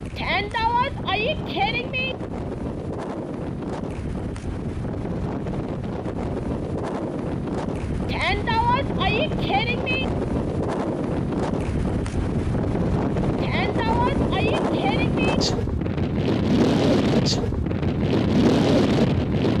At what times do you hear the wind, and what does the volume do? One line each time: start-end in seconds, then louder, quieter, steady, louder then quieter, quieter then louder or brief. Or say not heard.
0.0-19.5 louder.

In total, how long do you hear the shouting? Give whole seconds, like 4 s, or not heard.
6 s.